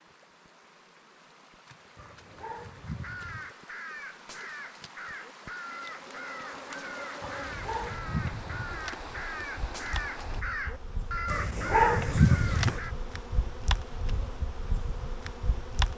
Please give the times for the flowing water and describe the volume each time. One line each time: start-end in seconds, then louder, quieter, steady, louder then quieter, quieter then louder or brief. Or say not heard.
0.0-10.4 louder.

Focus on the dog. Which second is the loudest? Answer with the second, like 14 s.
12 s.